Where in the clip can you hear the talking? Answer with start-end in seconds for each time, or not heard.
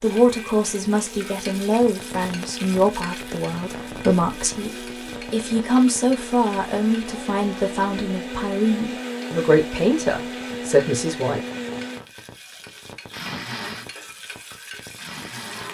0.0-11.4.